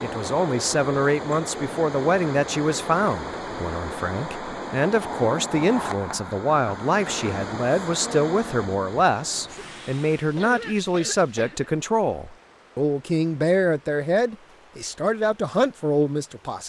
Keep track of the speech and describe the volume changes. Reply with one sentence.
The volume of the speech stays about the same.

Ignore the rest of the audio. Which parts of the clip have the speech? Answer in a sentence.
You can hear the speech from 0.0 to 16.6 s.